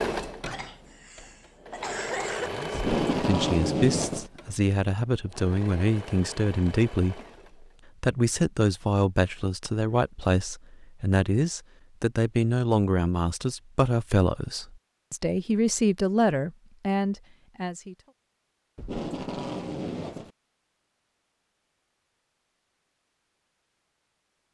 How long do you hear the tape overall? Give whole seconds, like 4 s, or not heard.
3 s.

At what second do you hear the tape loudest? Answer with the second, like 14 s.
3 s.